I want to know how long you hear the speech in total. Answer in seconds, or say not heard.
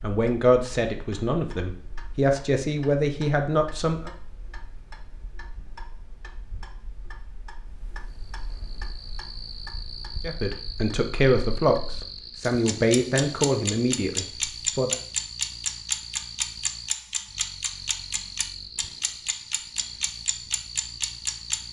9 s.